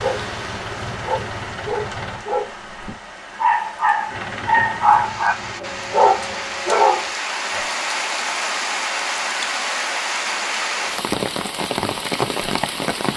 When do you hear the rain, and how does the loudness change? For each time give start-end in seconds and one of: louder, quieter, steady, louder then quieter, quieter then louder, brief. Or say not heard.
0.0-13.1 louder.